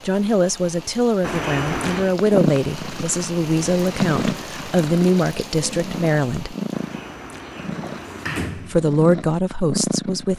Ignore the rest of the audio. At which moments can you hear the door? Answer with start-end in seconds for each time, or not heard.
1.2-2.1, 6.7-8.8.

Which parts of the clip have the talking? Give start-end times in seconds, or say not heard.
0.1-6.5, 8.6-10.3.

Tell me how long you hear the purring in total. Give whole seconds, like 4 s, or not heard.
8 s.